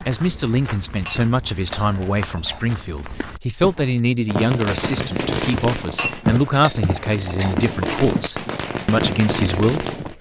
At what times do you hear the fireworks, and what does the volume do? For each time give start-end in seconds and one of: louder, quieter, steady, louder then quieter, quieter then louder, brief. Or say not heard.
4.0-10.1 quieter then louder.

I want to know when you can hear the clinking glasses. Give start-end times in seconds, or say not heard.
1.1-2.6, 6.0-7.5.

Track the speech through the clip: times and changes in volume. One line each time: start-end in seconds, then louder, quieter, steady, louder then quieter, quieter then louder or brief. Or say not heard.
0.0-10.1 steady.